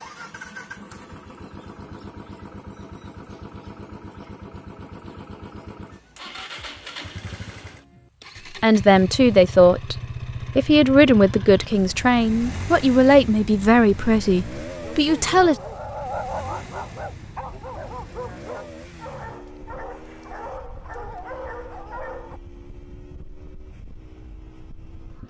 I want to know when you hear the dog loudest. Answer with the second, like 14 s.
16 s.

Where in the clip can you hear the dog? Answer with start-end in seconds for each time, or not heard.
14.8-22.4.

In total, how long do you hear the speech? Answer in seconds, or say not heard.
7 s.